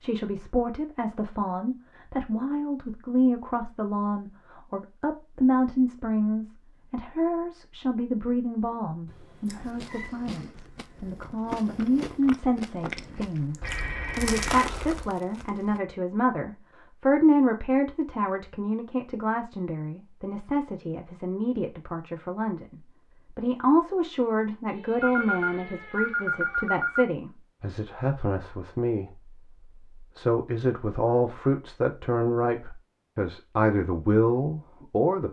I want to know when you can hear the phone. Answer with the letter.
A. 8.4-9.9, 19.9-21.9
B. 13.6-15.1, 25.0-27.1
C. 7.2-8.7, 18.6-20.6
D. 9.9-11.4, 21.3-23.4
B.